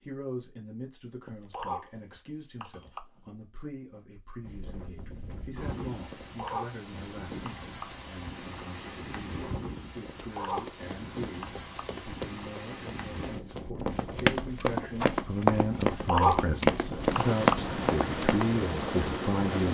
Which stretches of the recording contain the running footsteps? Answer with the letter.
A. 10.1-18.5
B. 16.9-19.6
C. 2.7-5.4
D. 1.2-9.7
A.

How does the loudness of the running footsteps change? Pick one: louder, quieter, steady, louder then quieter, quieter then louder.
louder.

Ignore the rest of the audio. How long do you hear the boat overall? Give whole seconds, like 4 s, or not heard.
3 s.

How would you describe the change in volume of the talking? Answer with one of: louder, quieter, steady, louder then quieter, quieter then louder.
louder.